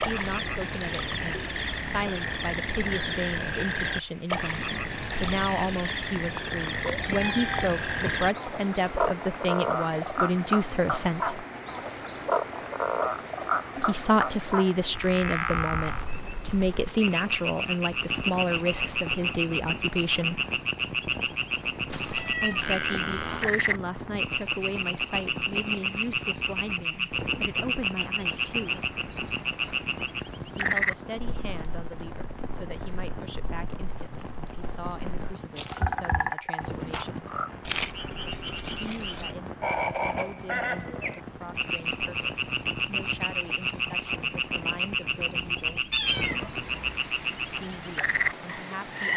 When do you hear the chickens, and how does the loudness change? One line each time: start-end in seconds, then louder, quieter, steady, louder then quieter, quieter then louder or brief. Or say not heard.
not heard.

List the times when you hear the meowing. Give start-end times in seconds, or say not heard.
6.8-8.2, 21.9-23.6, 45.9-47.0.